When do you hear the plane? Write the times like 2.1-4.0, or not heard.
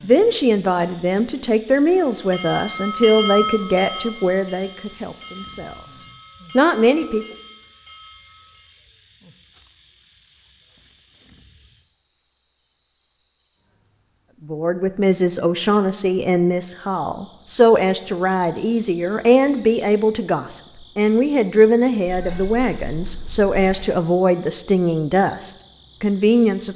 not heard.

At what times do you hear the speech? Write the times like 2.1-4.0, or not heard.
0.0-7.2, 14.4-26.7.